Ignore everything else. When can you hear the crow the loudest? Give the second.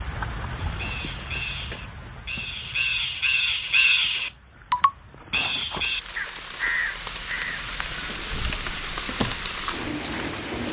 4 s.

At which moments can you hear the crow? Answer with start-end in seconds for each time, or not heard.
0.6-9.7.